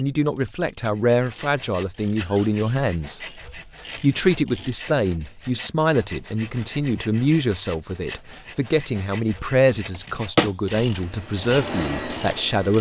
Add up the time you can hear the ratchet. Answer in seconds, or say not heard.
7 s.